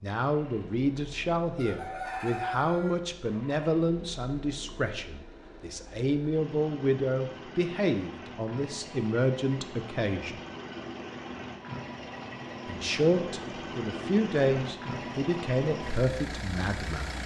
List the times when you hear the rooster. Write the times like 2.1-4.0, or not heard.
1.6-3.0.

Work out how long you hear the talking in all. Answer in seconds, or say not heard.
15 s.